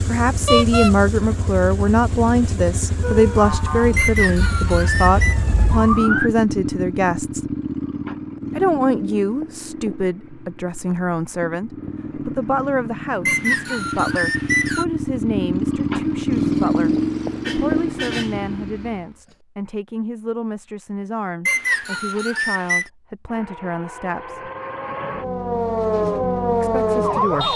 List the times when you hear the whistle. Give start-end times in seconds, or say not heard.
4.0-5.4, 13.2-14.8, 21.4-22.9.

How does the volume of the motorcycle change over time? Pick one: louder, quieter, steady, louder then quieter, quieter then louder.
louder.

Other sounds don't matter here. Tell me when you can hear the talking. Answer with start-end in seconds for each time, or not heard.
0.1-7.5, 8.6-24.5, 26.6-27.5.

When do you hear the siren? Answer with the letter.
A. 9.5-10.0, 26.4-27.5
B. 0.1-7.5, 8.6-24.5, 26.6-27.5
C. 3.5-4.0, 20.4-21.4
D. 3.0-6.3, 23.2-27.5
D.